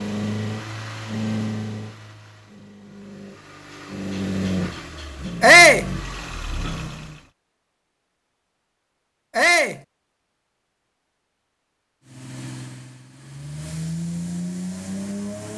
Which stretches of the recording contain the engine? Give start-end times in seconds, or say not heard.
0.0-7.2, 12.1-15.5.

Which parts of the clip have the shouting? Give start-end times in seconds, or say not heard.
5.4-5.8, 9.3-9.8.